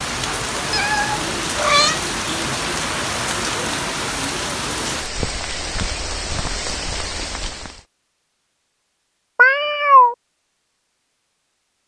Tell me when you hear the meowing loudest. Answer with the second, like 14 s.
10 s.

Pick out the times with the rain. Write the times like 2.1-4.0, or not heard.
0.0-7.8.